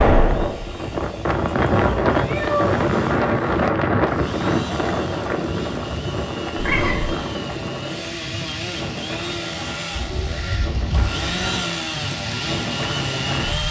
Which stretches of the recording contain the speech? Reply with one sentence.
You can't hear the speech here.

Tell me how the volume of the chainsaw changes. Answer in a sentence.
The volume of the chainsaw goes up.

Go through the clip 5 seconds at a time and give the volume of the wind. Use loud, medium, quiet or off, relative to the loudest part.
loud, medium, medium.